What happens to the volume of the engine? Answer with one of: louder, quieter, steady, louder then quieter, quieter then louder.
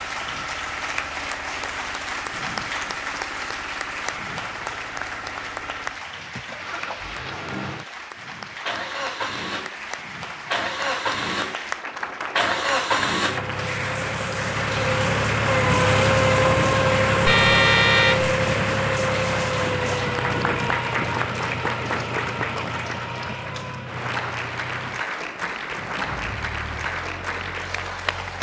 louder then quieter.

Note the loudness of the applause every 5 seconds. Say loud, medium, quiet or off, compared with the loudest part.
loud, medium, loud, loud, loud, loud.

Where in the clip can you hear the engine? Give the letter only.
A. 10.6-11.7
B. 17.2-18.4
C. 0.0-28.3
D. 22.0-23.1
C.